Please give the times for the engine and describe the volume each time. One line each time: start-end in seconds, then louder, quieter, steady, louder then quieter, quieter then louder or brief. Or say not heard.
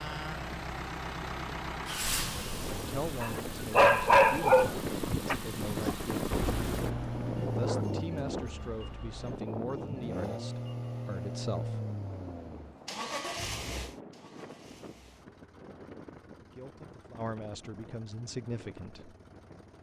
0.0-19.7 quieter.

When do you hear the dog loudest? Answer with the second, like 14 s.
4 s.